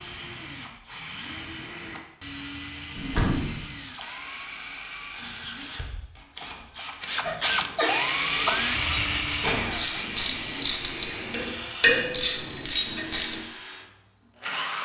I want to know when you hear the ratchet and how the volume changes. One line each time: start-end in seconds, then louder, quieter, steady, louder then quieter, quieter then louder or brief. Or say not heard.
8.1-13.4 louder.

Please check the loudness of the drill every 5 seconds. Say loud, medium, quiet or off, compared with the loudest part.
medium, loud, medium.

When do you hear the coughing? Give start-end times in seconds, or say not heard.
7.2-8.5.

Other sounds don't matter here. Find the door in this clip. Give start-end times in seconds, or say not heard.
3.0-3.6, 8.3-9.8.